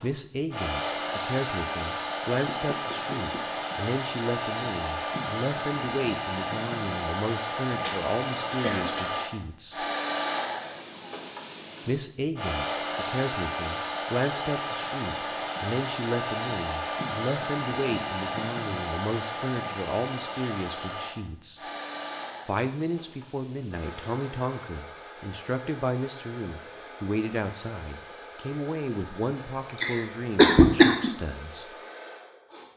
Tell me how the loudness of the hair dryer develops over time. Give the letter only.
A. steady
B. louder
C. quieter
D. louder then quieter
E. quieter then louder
C.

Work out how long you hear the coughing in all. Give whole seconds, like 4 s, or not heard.
3 s.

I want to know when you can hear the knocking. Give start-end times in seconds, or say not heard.
2.5-3.5.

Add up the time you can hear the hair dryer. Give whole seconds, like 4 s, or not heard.
33 s.